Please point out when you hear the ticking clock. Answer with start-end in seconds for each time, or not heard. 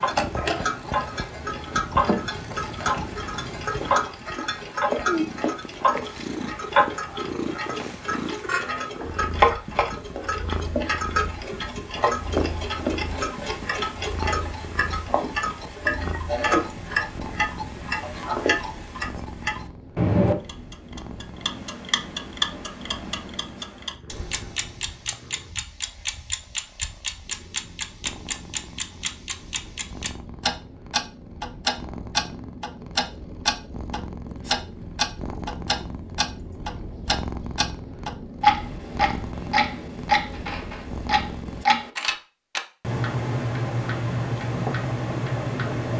0.0-45.9.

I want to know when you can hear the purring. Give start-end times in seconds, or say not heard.
0.0-41.6.